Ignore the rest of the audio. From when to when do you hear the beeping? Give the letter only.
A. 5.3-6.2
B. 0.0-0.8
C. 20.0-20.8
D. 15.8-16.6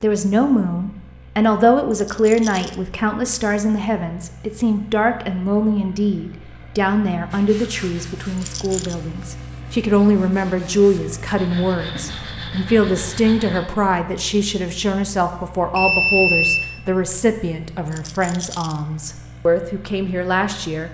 D.